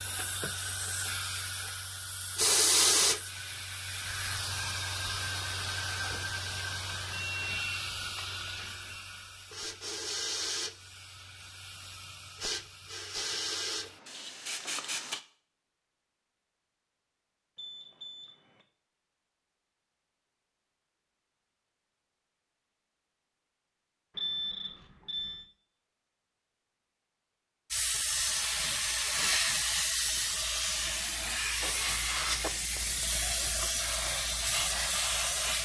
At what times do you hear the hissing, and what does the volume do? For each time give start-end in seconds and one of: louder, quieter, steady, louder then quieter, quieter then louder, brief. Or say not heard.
0.0-15.2 quieter
27.7-35.6 steady.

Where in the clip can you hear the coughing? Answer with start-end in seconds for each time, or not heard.
not heard.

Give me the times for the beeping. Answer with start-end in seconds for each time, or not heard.
6.9-9.0, 17.6-18.6, 24.1-25.5.